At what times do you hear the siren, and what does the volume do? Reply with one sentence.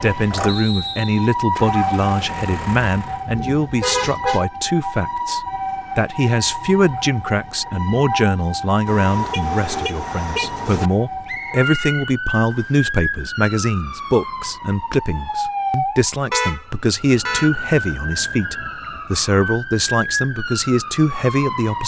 The siren can be heard from 0.0 to 21.8 s, at a steady volume.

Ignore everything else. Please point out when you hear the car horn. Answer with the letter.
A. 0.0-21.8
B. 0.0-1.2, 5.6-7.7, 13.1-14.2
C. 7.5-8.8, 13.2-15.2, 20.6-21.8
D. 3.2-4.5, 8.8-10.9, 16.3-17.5
D.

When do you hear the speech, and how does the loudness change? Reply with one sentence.
The speech can be heard from 0.0 to 21.8 s, at a steady volume.